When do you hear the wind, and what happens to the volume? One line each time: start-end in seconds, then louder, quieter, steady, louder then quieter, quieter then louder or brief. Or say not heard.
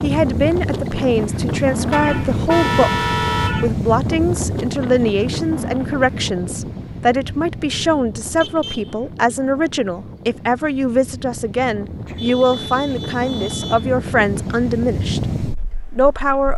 0.0-16.5 quieter then louder.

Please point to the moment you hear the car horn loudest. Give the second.
3 s.